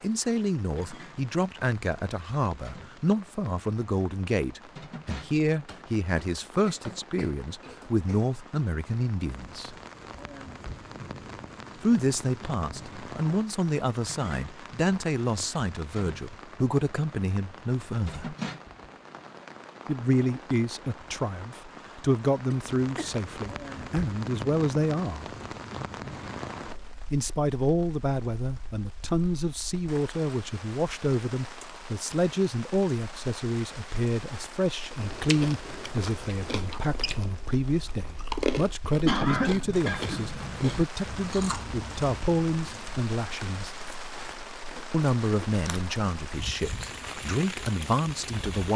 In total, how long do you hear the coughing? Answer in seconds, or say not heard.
5 s.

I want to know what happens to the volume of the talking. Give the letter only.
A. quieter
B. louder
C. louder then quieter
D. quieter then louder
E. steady
E.